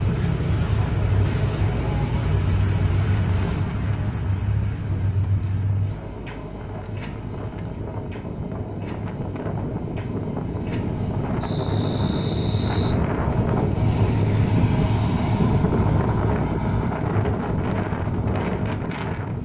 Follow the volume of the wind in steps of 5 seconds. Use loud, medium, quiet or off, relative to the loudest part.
quiet, medium, loud, loud.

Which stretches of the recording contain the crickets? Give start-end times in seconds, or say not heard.
0.0-12.9.